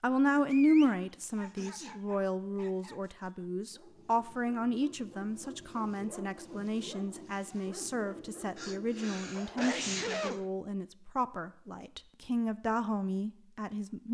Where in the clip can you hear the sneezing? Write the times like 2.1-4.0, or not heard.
1.2-2.0, 8.6-10.4.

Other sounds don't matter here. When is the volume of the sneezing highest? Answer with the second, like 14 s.
10 s.